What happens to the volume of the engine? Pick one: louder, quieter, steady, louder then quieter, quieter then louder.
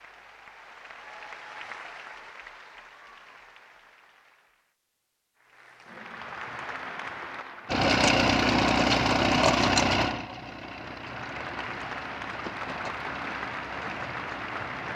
quieter.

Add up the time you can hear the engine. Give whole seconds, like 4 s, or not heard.
7 s.